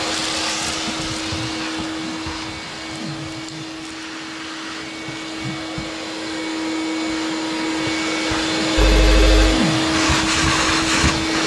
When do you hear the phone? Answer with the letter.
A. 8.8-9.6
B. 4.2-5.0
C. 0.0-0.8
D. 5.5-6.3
A.